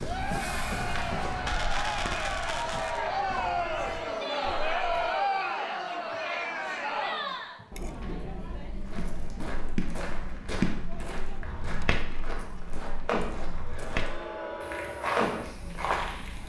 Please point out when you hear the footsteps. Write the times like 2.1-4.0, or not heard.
0.0-5.2, 8.7-16.4.